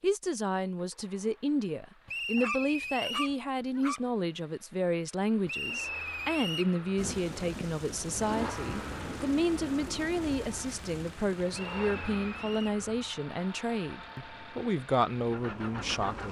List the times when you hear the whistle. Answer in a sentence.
You can hear the whistle from 2.0 to 3.4 s, from 5.5 to 6.8 s and from 11.5 to 12.8 s.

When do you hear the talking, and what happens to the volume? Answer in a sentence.
You can hear the talking from 0.0 to 16.2 s, at a steady volume.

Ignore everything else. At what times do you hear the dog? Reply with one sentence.
You can hear the dog from 2.4 to 4.1 s.